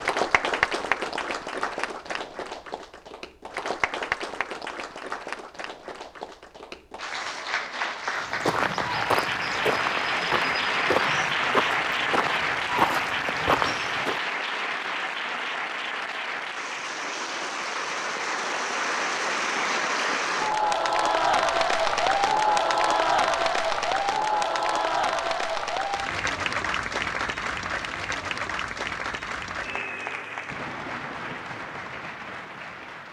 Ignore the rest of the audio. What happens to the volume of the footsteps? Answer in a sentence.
The loudness of the footsteps goes down, then up.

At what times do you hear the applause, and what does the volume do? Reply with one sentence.
You can hear the applause from 0.0 to 33.0 s, getting louder then quieter.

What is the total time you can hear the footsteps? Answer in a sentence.
The footsteps can be heard for 6 seconds in total.